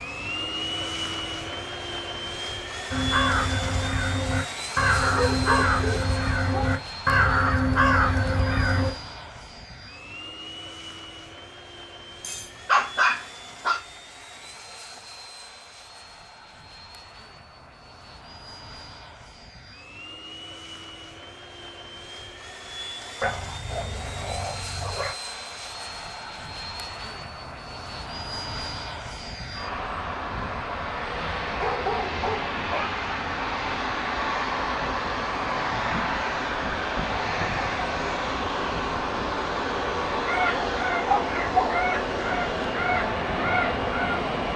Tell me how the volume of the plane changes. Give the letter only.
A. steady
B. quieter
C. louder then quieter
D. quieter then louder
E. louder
D.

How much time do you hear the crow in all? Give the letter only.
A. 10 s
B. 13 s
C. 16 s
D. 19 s
A.